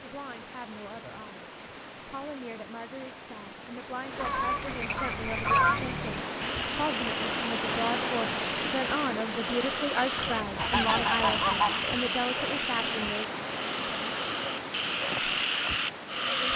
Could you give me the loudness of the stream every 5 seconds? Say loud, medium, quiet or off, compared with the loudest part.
medium, loud, loud, medium.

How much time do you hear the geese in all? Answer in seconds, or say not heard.
3 s.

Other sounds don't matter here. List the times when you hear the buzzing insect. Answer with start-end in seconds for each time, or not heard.
not heard.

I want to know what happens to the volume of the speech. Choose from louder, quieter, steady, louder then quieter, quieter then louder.
louder.